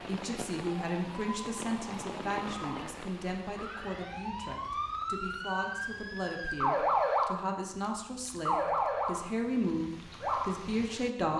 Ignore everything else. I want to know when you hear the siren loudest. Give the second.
7 s.